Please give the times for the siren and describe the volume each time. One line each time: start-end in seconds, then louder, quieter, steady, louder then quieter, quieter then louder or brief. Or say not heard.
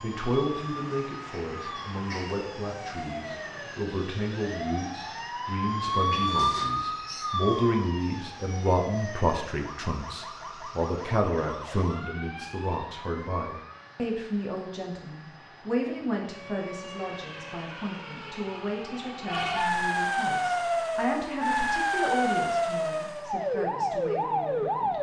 0.0-13.9 louder then quieter
16.2-24.9 louder.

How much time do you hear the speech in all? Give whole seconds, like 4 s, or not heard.
25 s.